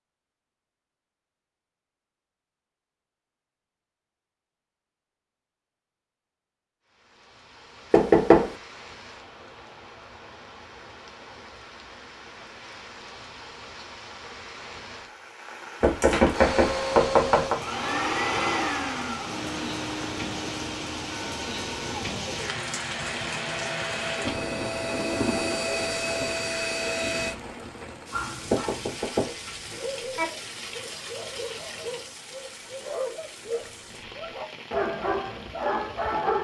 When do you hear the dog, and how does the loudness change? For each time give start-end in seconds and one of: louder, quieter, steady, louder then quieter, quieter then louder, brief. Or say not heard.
28.1-36.3 louder.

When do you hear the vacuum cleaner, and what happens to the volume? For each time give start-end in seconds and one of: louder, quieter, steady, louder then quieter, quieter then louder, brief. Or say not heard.
16.3-27.4 quieter then louder.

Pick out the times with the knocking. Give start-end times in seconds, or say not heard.
7.9-8.6, 15.8-17.6, 28.5-30.2.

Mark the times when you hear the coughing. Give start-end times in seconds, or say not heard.
not heard.